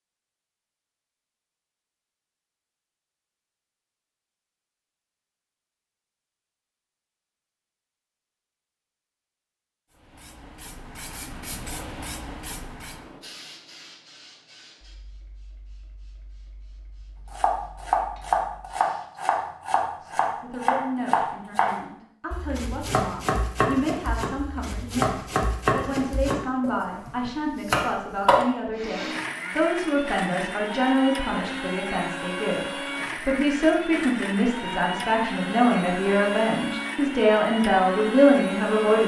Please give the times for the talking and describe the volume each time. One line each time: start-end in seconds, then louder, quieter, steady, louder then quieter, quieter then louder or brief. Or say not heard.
20.0-39.0 louder.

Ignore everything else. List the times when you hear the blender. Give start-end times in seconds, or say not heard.
28.7-39.0.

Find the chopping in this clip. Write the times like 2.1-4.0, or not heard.
17.3-28.4.